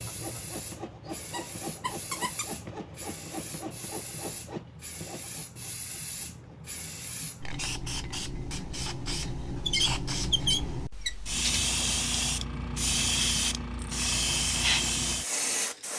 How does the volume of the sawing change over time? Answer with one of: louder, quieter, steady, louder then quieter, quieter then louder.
quieter.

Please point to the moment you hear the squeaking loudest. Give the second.
10 s.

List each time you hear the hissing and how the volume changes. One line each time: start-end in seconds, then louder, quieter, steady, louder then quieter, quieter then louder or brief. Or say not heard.
0.0-15.9 louder.